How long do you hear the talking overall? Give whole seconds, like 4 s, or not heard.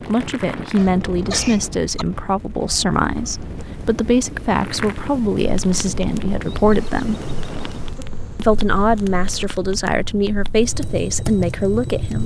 11 s.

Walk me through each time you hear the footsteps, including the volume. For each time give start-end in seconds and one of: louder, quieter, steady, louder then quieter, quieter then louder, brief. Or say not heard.
not heard.